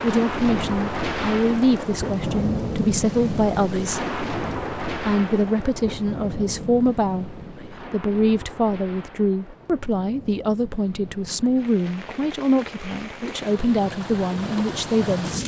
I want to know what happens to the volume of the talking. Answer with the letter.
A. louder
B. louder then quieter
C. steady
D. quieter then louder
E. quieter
C.